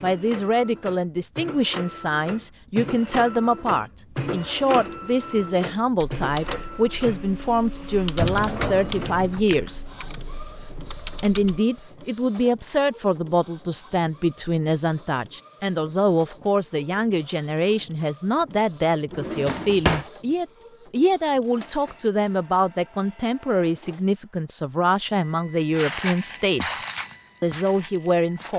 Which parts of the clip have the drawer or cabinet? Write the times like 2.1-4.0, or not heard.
8.2-9.4, 19.1-20.1.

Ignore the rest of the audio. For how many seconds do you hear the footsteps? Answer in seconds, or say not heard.
3 s.